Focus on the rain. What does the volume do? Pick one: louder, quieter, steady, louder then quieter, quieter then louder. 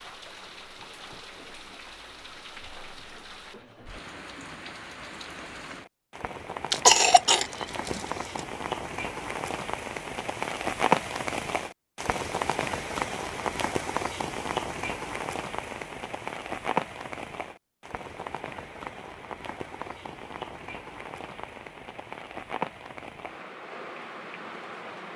louder then quieter.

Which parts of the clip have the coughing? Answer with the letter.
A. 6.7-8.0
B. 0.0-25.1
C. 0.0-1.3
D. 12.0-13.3
A.